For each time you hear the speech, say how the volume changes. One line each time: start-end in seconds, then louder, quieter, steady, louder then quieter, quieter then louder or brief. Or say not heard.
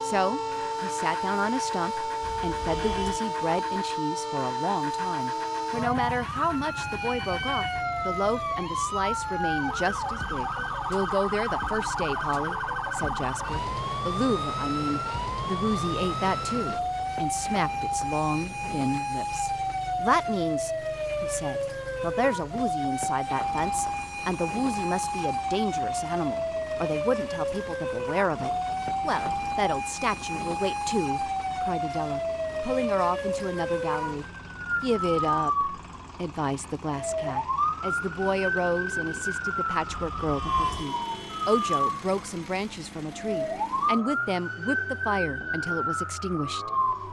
0.0-46.9 steady.